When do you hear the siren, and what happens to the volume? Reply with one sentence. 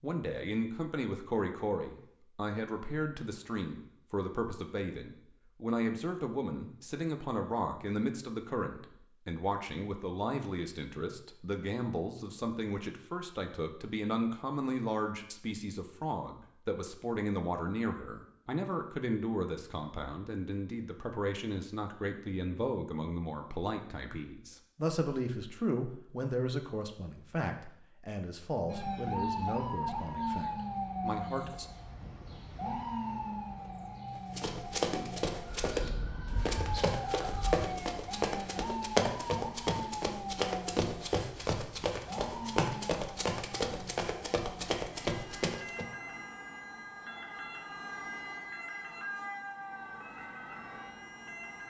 You can hear the siren from 28.6 to 51.6 s, getting quieter.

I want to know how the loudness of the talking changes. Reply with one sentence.
The volume of the talking stays about the same.